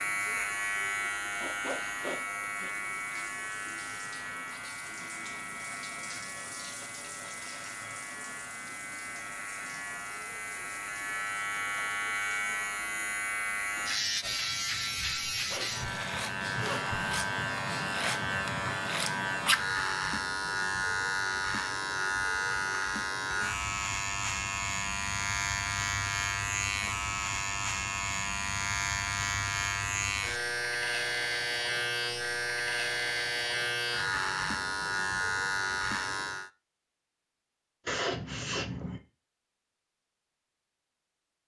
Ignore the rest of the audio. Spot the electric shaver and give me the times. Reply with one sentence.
You can hear the electric shaver from 0.0 to 36.5 s.